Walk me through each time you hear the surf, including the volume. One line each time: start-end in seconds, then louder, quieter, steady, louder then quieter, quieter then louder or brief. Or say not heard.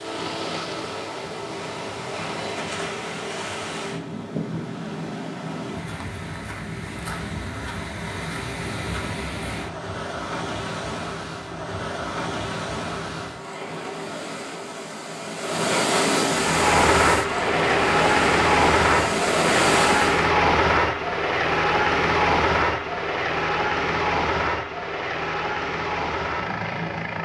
0.0-20.3 louder.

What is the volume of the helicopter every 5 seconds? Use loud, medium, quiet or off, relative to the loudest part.
off, off, off, loud, loud, medium.